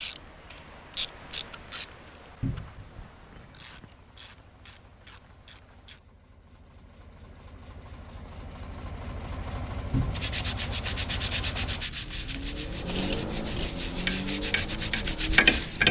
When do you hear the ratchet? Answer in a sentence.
The ratchet can be heard from 0.0 to 6.0 s and from 12.9 to 15.8 s.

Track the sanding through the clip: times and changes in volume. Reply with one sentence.
You can hear the sanding from 10.1 to 15.8 s, getting quieter then louder.